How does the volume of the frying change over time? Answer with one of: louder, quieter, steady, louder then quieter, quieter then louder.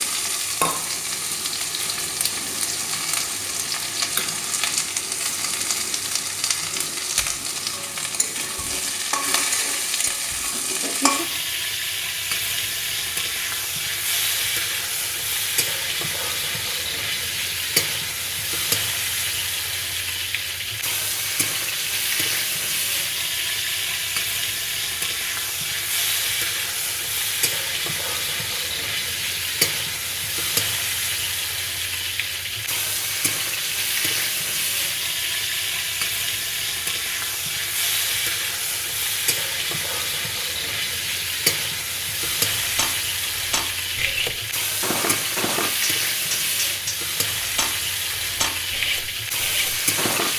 steady.